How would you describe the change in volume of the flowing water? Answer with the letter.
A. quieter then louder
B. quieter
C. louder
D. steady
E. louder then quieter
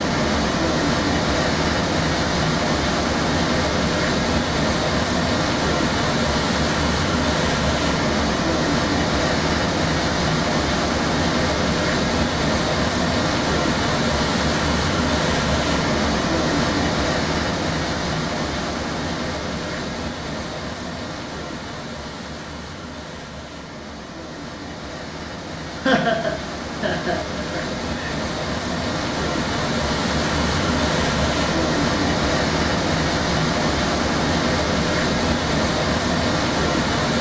A.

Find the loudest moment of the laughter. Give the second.
26 s.